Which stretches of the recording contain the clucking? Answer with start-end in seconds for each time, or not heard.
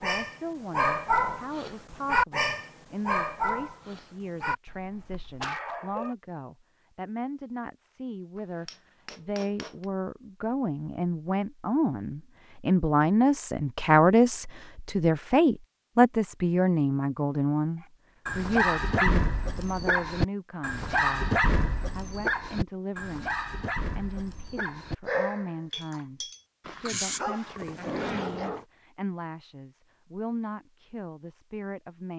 not heard.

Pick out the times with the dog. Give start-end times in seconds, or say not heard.
0.0-6.2, 18.2-28.6.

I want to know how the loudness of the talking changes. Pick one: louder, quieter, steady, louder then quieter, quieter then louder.
louder then quieter.